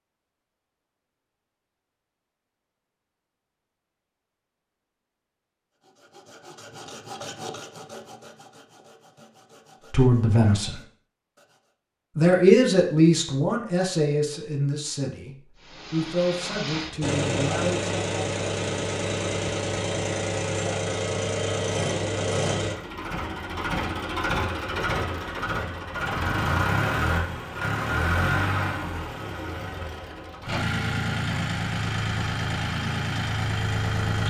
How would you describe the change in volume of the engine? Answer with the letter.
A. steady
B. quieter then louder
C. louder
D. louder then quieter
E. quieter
A.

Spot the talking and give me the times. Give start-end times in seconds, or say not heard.
9.9-10.8, 12.2-17.9.